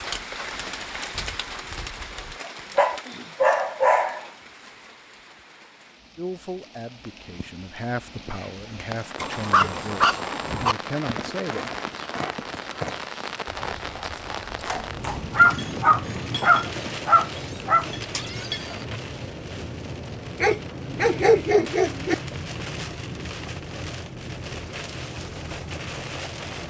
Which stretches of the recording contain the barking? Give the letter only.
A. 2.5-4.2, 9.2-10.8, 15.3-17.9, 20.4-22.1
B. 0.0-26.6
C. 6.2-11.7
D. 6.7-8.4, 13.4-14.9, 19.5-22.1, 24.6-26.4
A.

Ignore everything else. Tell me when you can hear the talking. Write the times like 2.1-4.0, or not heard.
6.2-11.7.